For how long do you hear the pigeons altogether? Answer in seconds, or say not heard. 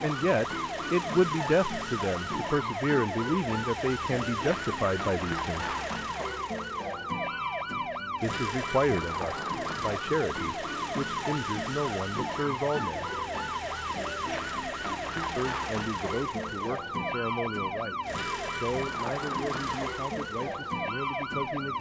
not heard.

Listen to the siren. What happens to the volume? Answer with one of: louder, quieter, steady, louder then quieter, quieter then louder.
steady.